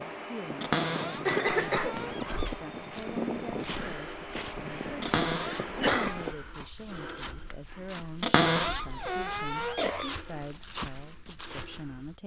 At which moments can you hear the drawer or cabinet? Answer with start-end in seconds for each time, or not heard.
0.6-2.5, 5.0-6.3, 8.2-10.2.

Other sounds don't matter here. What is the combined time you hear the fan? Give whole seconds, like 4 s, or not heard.
6 s.